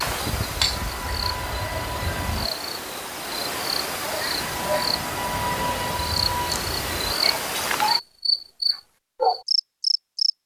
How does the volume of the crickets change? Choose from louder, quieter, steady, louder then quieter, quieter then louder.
louder.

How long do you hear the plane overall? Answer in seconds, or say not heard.
5 s.